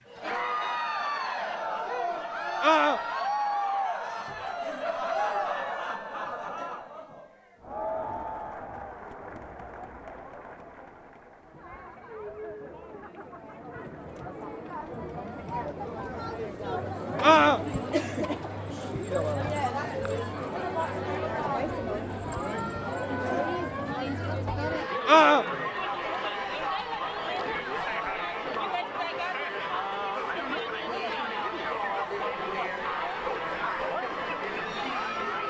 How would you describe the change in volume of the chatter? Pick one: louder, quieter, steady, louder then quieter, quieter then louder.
quieter then louder.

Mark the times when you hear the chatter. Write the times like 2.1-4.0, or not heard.
0.1-35.4.